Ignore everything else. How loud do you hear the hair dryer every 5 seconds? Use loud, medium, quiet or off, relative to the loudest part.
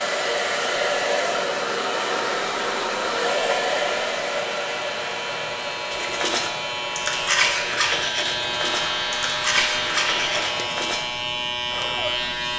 loud, medium, medium.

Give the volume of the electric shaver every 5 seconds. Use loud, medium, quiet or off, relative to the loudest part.
medium, loud, loud.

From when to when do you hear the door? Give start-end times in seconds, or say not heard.
not heard.